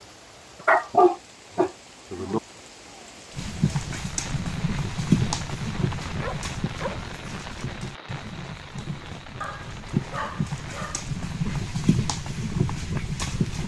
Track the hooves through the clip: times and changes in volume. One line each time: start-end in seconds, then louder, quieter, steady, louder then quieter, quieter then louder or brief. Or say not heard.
3.4-13.6 quieter then louder.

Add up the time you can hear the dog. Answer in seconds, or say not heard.
4 s.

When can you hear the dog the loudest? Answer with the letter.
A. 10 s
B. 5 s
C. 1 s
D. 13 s
C.